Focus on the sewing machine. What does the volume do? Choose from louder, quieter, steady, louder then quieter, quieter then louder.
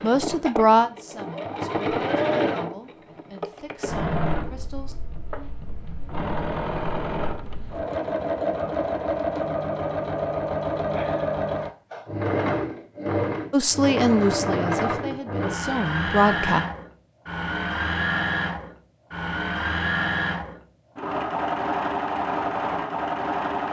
steady.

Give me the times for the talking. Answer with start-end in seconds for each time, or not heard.
0.0-5.0, 13.5-16.6.